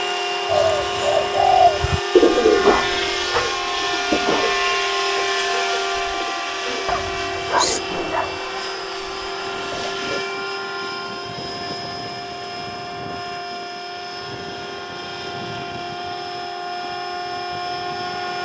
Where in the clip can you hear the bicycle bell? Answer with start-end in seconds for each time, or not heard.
not heard.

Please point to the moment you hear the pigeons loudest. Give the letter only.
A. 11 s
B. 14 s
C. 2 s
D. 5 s
C.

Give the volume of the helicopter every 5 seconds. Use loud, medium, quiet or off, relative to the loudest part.
loud, loud, medium, medium.